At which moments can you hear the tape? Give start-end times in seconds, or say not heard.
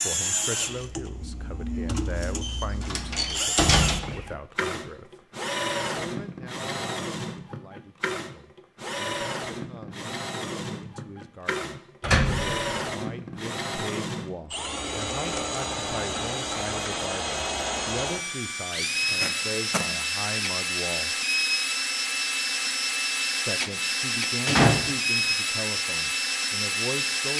18.9-19.9.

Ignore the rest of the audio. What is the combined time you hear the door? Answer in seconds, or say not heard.
3 s.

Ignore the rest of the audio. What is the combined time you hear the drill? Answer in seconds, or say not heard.
27 s.